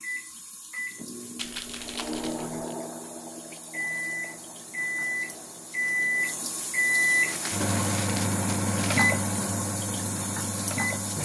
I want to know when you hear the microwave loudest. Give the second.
7 s.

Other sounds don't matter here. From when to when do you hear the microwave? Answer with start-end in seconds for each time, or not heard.
0.0-11.2.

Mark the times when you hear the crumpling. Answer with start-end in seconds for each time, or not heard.
1.4-2.6, 7.2-9.2.